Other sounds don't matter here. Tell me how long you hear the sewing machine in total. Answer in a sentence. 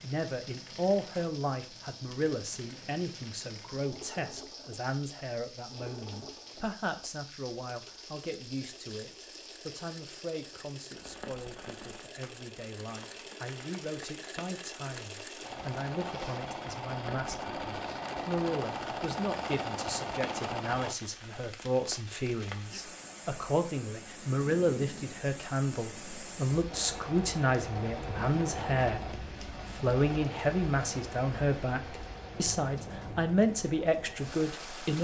You can hear the sewing machine for 29 seconds altogether.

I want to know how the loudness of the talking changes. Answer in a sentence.
The loudness of the talking goes down, then up.